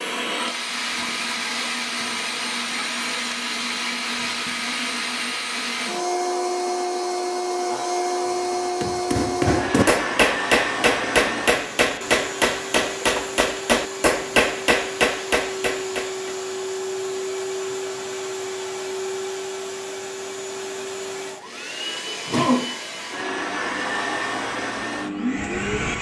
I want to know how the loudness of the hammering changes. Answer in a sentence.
The loudness of the hammering stays about the same.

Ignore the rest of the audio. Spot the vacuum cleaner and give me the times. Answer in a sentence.
The vacuum cleaner can be heard from 0.0 to 25.9 s.